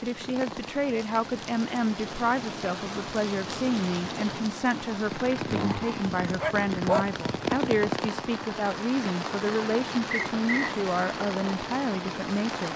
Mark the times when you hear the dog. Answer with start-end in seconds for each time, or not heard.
6.2-7.9.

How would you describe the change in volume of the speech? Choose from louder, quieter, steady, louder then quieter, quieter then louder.
steady.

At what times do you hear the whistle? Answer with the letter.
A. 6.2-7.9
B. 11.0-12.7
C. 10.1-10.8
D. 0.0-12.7
C.